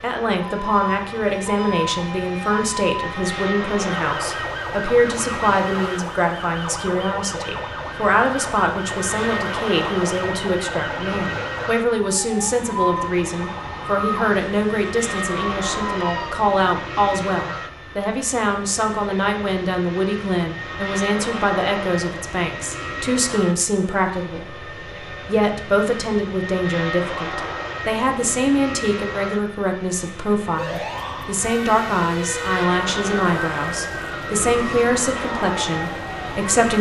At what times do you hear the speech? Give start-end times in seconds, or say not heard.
0.0-36.7.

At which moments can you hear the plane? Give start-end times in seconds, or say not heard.
0.0-36.7.